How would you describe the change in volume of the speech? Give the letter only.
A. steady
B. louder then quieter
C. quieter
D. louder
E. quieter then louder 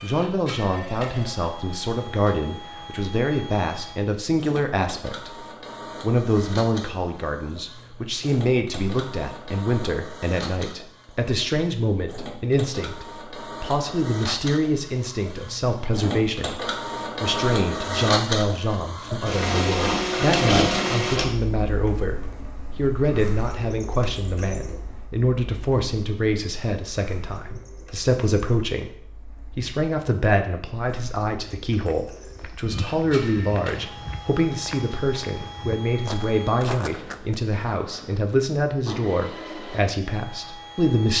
A.